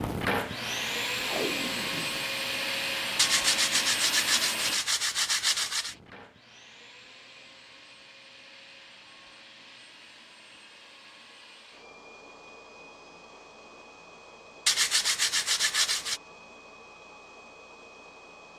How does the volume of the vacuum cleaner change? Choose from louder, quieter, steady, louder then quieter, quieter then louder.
quieter.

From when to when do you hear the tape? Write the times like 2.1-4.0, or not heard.
1.2-2.2.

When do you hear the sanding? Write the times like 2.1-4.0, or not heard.
3.1-6.0, 14.7-16.2.